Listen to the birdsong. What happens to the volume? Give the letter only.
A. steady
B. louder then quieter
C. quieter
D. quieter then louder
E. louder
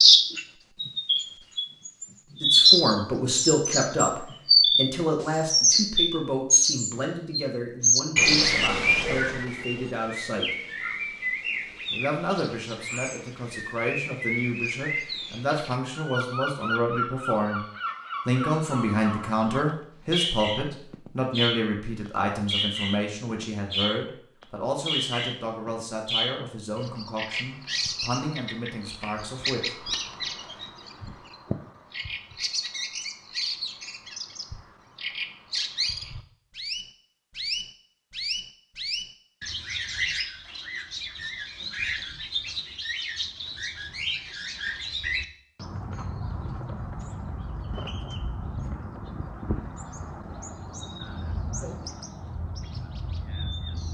C.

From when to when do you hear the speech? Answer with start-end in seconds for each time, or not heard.
2.4-10.6, 11.9-17.6, 18.2-29.9.